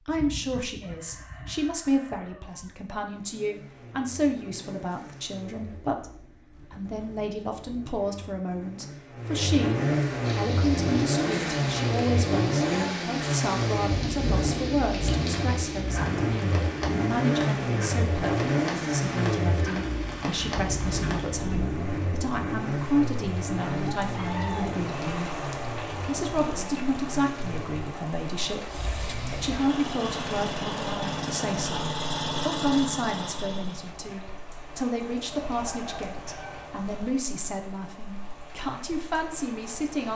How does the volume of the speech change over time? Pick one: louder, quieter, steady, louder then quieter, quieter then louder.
steady.